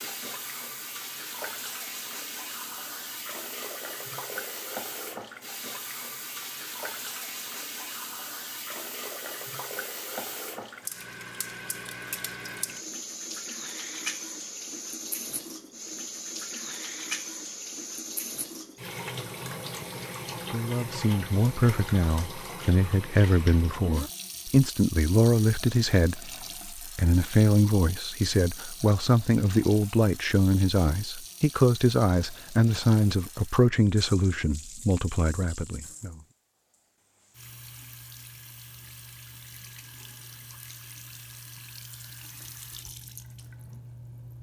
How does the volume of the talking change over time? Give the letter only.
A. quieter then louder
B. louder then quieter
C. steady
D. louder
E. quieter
C.